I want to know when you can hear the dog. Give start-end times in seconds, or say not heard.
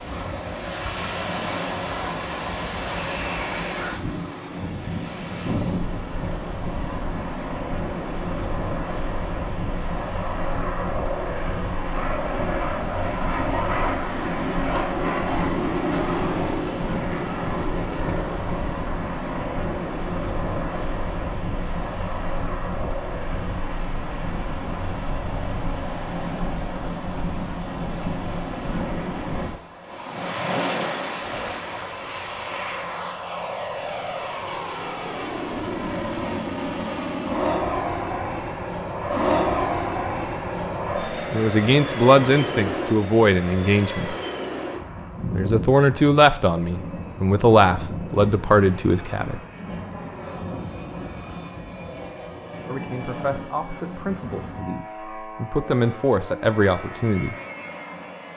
not heard.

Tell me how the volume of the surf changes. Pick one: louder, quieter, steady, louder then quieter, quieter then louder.
steady.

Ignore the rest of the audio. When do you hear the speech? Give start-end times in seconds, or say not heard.
41.3-44.1, 45.3-49.4, 52.6-57.4.